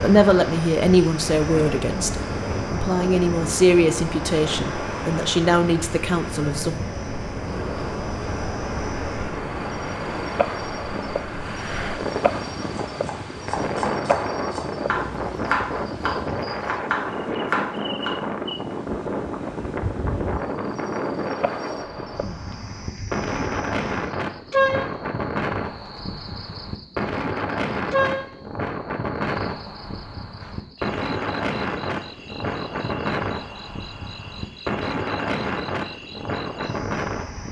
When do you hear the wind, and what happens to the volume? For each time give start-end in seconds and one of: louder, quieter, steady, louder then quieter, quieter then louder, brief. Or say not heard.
0.0-37.4 steady.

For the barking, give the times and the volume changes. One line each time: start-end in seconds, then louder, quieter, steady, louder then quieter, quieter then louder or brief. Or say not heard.
not heard.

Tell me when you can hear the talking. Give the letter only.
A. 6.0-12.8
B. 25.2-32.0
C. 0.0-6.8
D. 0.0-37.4
C.